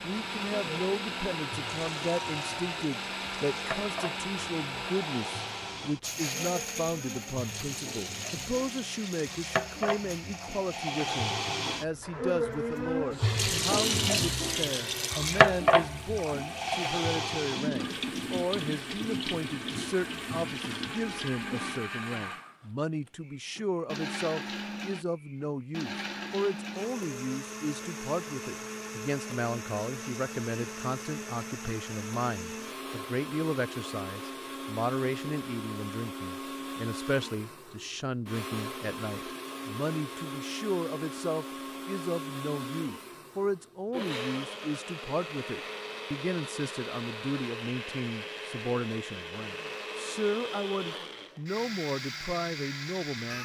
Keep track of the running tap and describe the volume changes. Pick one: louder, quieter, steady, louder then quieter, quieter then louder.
louder then quieter.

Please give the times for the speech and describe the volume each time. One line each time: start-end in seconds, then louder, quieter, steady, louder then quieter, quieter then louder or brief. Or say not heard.
0.0-53.4 steady.